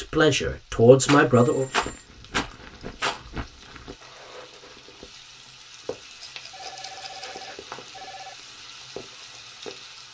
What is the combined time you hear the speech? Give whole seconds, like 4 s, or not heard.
2 s.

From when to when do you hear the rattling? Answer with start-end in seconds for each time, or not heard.
1.1-3.2, 6.2-7.5.